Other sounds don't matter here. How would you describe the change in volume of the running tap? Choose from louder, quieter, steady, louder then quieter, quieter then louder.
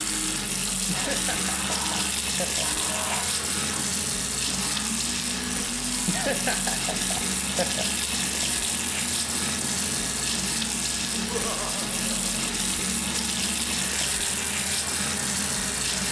steady.